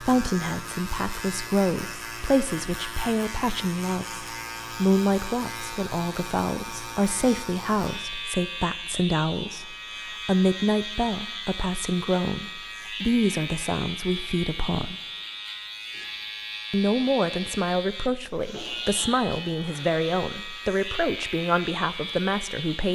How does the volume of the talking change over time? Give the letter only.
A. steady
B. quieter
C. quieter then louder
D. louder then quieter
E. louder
A.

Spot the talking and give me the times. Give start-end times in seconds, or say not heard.
0.0-14.9, 16.7-22.9.